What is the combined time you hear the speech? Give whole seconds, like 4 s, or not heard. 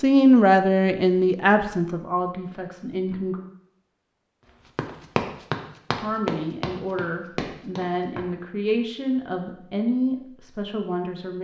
9 s.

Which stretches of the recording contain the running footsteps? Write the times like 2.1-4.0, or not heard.
4.8-8.2.